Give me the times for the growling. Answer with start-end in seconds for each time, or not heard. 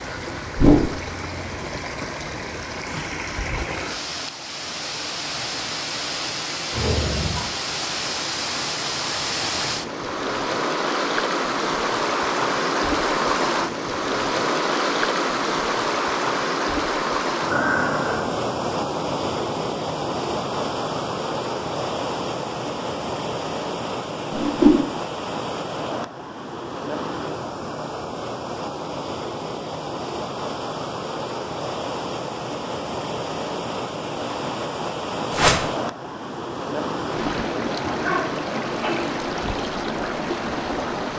6.7-7.5, 17.5-18.3, 37.8-39.1.